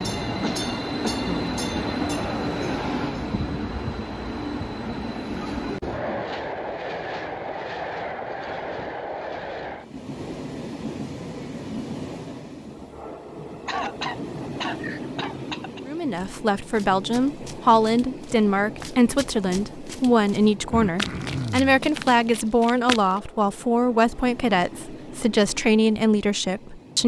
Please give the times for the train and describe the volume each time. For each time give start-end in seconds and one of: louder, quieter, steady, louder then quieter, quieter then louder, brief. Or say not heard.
0.0-27.0 quieter.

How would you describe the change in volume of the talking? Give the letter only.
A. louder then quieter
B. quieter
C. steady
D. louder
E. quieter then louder
C.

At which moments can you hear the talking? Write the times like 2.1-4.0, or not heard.
15.8-27.0.